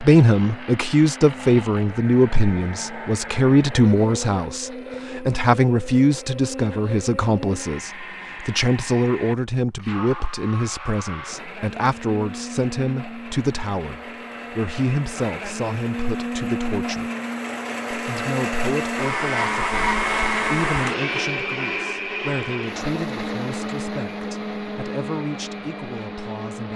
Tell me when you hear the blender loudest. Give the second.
20 s.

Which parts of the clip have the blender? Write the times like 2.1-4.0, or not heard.
0.0-26.7.